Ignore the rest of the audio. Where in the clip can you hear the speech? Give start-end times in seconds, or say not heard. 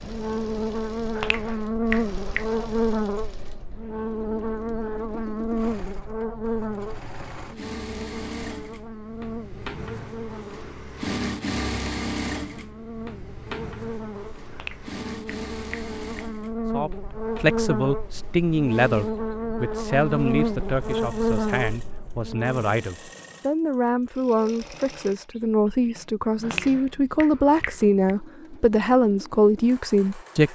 16.7-30.5.